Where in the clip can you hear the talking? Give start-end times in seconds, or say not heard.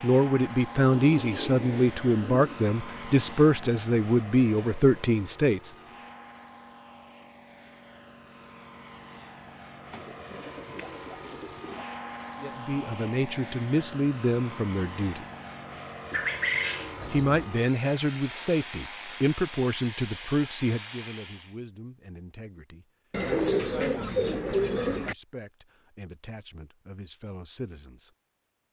0.0-5.7, 12.4-15.2, 17.1-28.1.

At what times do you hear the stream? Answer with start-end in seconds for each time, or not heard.
not heard.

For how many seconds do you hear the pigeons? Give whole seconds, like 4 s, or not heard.
7 s.